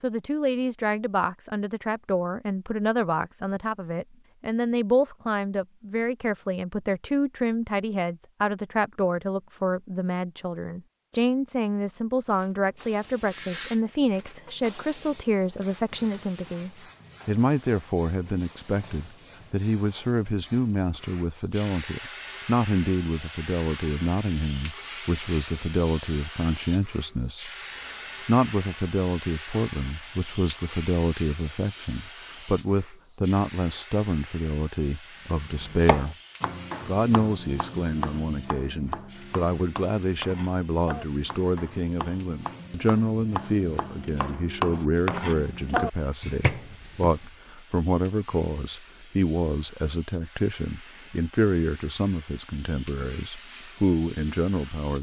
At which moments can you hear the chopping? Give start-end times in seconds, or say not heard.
35.3-47.3.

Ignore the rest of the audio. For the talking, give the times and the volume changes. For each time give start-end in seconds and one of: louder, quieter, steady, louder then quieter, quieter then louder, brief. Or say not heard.
0.0-36.1 steady
36.9-54.9 steady.